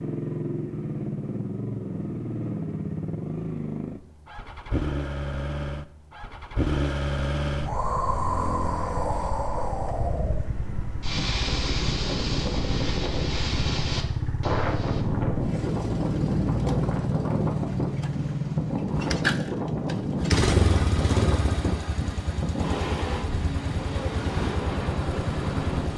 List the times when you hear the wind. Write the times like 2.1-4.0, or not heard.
7.7-25.9.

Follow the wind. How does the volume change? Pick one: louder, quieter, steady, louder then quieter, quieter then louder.
steady.